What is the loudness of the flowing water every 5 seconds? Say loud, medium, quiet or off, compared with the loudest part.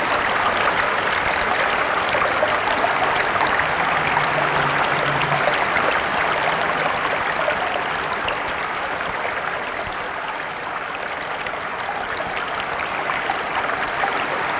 loud, loud, medium.